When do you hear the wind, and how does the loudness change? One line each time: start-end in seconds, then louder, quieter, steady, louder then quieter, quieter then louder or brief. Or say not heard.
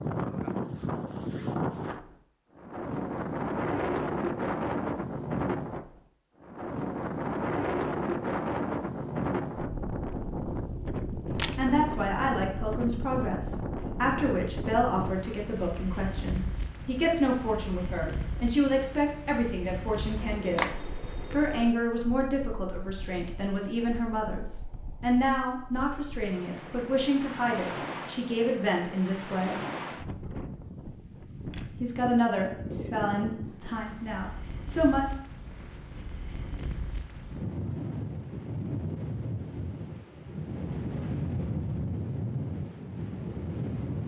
0.0-44.0 quieter then louder.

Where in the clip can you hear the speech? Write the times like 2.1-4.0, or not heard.
11.6-20.7, 21.3-29.6, 31.8-35.0.